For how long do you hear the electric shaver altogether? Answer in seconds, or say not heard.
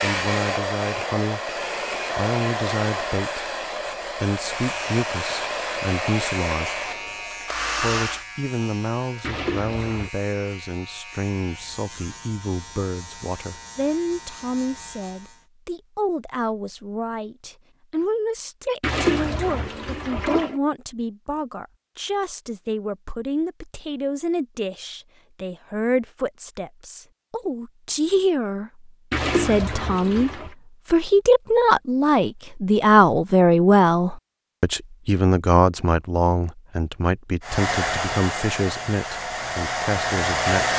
11 s.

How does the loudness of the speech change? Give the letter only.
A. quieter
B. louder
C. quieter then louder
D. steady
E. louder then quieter
B.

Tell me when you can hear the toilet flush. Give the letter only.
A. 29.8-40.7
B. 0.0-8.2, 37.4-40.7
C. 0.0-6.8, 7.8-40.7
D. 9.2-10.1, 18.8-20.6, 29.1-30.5
D.